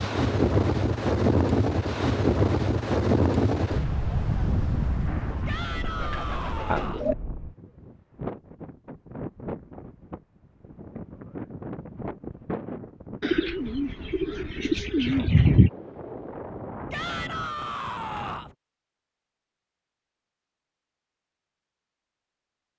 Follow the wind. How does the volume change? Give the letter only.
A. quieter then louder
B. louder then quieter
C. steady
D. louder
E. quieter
E.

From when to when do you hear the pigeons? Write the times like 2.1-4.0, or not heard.
5.8-7.2, 13.2-15.7.